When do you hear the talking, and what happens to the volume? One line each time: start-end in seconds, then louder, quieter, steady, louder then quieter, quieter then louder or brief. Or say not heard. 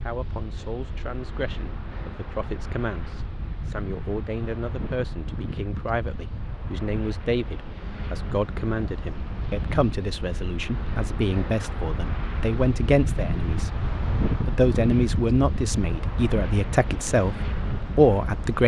0.0-13.7 louder
14.3-18.6 quieter then louder.